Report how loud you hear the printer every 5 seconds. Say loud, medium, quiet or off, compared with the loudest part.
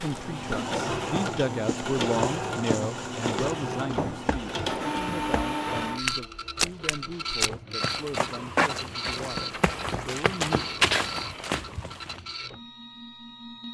loud, loud, medium.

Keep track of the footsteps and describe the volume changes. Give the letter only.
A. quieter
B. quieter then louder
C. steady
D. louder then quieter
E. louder
E.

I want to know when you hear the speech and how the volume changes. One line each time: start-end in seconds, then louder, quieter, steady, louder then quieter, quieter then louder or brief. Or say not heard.
0.0-10.7 quieter.